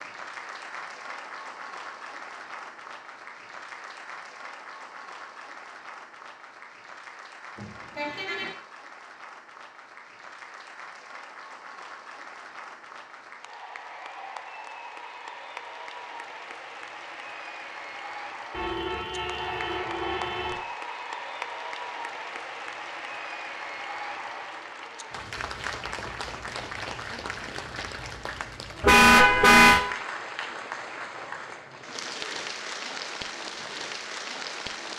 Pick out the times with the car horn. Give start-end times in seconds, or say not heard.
7.5-8.5, 18.5-20.6, 28.8-29.8.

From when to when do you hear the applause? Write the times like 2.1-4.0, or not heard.
0.0-34.9.